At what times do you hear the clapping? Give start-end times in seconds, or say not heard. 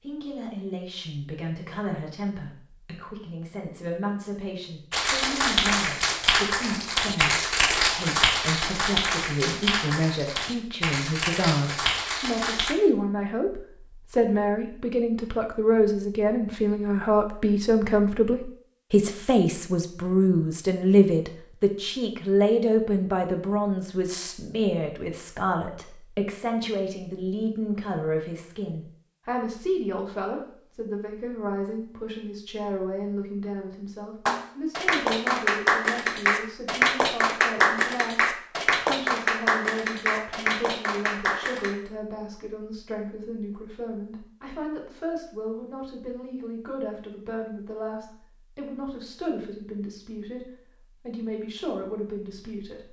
4.9-12.8, 34.2-41.8.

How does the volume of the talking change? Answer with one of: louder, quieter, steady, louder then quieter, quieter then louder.
louder then quieter.